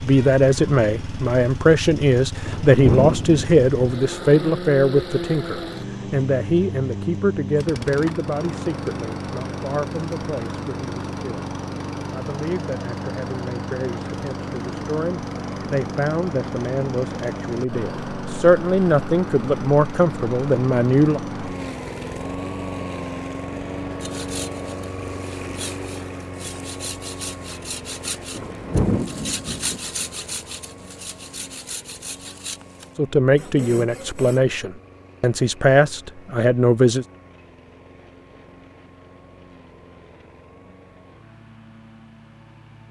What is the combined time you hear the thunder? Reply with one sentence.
You can hear the thunder for 3 seconds altogether.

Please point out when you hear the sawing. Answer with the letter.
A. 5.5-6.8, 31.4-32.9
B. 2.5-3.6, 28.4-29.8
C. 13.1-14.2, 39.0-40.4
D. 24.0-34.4
D.